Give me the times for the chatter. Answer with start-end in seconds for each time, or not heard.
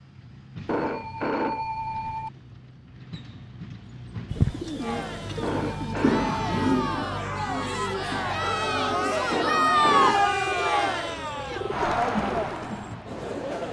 4.8-13.6.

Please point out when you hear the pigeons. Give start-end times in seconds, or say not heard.
4.3-12.9.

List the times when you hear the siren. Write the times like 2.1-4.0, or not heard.
not heard.